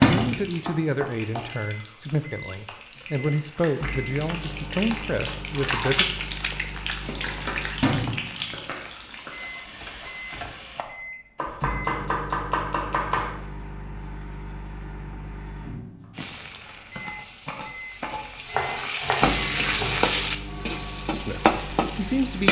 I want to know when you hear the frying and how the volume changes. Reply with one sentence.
The frying can be heard from 0.0 to 10.8 s, getting louder then quieter; and from 16.1 to 22.4 s, getting louder.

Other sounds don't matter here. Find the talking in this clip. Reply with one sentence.
The talking can be heard from 0.0 to 6.0 s and from 21.1 to 22.4 s.